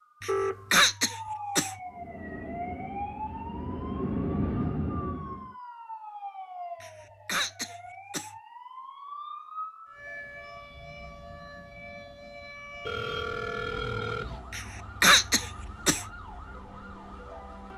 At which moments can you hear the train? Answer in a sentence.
The train can be heard from 1.9 to 5.5 s.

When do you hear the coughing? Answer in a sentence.
You can hear the coughing from 0.2 to 1.8 s, from 6.8 to 8.3 s and from 14.5 to 16.1 s.